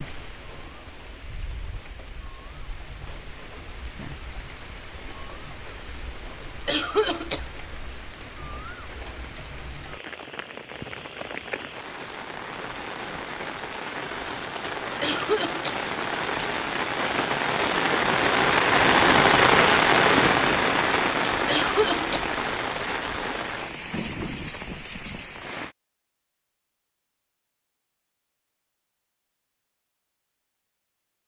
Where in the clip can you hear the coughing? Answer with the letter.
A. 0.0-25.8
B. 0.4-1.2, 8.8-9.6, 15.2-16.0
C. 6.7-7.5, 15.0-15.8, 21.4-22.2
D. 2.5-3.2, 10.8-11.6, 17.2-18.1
C.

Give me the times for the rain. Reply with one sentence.
The rain can be heard from 0.0 to 25.8 s.